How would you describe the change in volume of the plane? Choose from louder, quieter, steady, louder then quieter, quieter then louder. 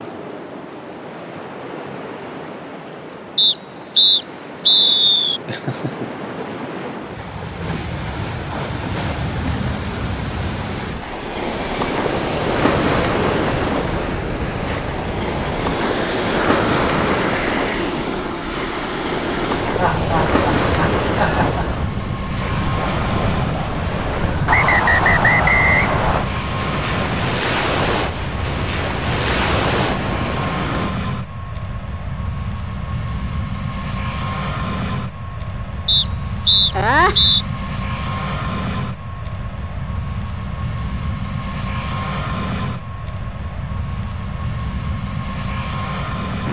steady.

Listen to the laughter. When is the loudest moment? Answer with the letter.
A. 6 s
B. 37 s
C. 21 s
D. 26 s
B.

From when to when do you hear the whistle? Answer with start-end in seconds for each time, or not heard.
3.4-5.4, 24.4-26.2, 35.9-37.5.